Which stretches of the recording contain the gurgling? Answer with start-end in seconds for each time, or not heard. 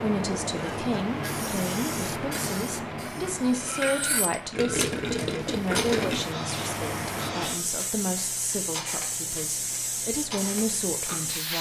4.5-6.3.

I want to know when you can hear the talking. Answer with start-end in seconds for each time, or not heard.
0.0-11.5.